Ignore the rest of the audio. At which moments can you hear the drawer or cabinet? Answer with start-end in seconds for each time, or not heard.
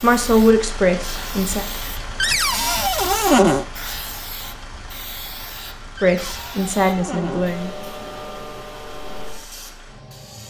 2.2-3.6, 6.0-7.5.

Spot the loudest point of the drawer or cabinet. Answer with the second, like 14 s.
3 s.